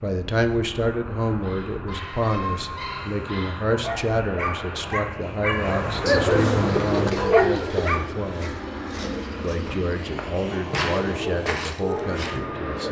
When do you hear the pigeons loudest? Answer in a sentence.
The loudest moment of the pigeons is at 7 seconds.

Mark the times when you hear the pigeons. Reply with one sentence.
The pigeons can be heard from 6.0 to 7.9 s.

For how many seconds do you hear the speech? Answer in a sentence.
The speech can be heard for 12 seconds in total.